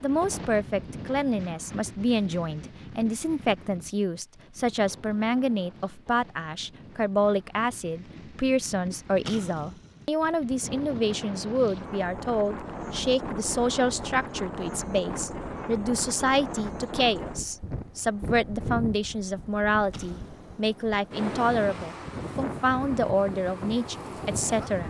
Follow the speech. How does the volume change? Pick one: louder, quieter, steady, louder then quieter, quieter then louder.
steady.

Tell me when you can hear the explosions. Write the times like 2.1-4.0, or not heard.
9.2-10.1, 19.9-20.6.